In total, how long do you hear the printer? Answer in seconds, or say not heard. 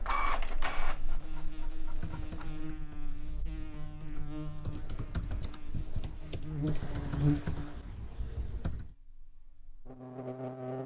3 s.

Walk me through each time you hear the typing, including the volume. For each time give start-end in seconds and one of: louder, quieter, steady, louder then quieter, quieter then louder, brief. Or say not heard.
1.9-8.9 louder.